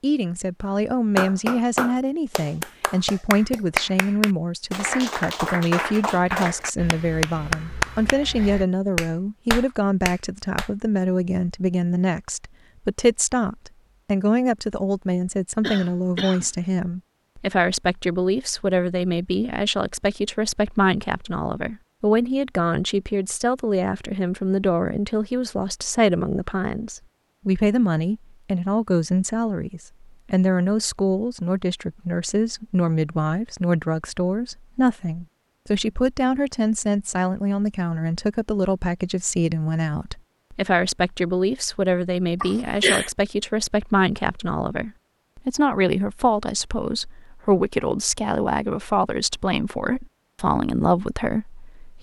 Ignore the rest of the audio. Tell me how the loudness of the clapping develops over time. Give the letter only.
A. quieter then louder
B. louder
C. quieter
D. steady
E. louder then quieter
D.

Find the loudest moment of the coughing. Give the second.
43 s.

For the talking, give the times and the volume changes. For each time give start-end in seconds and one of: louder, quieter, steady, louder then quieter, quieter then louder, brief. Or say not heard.
0.0-51.9 steady.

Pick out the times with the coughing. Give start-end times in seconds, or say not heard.
15.6-16.5, 42.4-43.1.